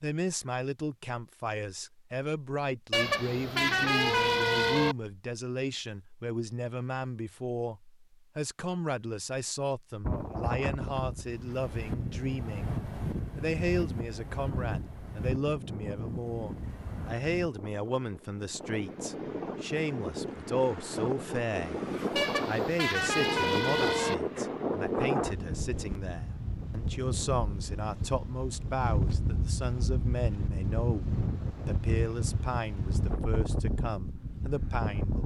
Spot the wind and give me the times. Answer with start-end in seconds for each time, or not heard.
10.0-35.2.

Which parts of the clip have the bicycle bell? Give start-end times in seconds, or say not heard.
not heard.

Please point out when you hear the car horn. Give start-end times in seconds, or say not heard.
2.9-5.0, 22.1-24.1.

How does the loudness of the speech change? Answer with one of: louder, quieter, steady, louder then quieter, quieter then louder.
steady.